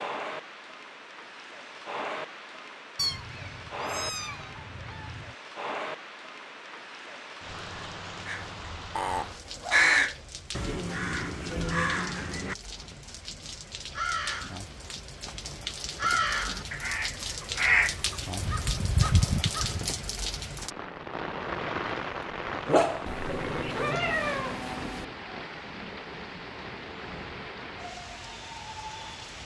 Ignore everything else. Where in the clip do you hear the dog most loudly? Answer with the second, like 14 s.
23 s.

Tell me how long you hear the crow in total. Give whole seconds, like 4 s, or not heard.
12 s.